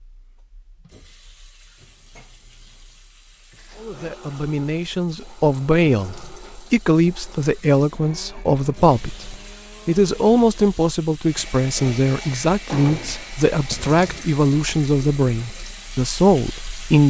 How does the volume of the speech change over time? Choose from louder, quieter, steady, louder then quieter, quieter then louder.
steady.